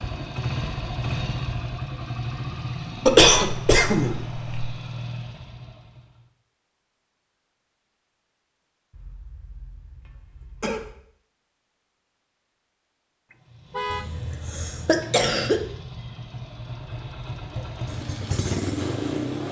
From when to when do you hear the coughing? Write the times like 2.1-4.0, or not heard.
3.0-4.7, 8.9-10.9, 13.9-15.7.